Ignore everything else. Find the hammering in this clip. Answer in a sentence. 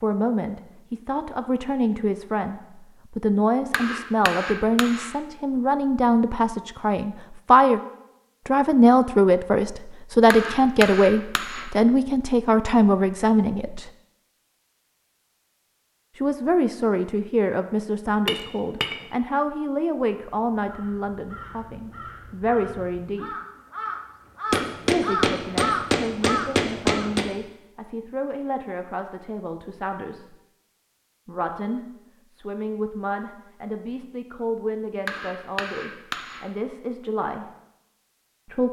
You can hear the hammering from 3.7 to 5.1 s, from 10.3 to 11.7 s, from 18.2 to 19.0 s, from 24.5 to 27.3 s and from 35.0 to 36.5 s.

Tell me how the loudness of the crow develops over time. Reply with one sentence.
The volume of the crow goes up.